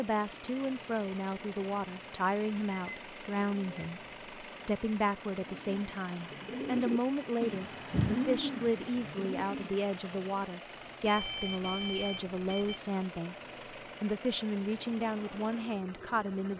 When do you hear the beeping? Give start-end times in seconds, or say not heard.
2.7-4.0, 11.0-12.8.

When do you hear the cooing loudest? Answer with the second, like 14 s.
8 s.